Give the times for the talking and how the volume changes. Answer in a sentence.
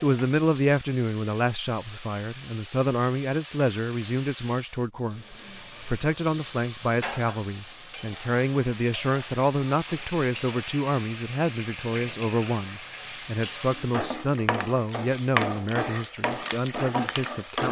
The talking can be heard from 0.0 to 17.6 s, at a steady volume.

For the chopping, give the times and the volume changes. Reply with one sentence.
You can't hear the chopping here.